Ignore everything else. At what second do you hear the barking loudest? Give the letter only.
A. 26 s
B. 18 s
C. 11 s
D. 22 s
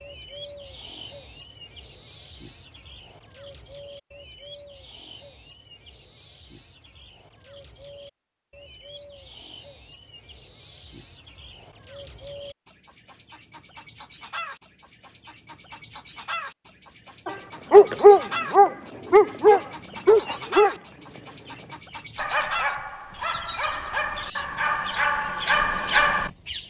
B.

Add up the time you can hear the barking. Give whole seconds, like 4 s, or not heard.
9 s.